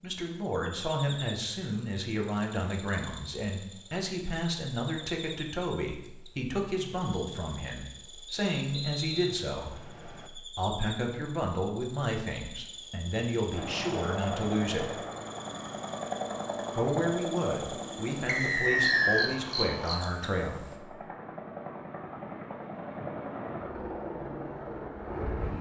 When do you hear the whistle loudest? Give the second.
19 s.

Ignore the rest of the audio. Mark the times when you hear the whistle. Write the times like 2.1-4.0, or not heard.
8.4-10.3, 18.2-19.3.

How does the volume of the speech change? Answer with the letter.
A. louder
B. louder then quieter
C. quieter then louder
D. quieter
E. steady
E.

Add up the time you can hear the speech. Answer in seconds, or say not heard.
19 s.